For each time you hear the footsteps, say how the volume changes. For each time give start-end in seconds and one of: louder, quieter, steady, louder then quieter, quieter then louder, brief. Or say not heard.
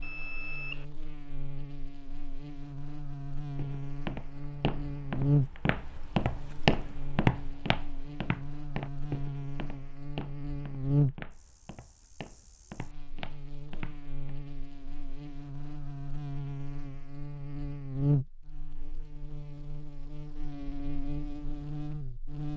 3.5-14.1 louder then quieter.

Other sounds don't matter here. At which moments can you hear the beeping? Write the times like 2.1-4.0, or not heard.
0.0-0.8.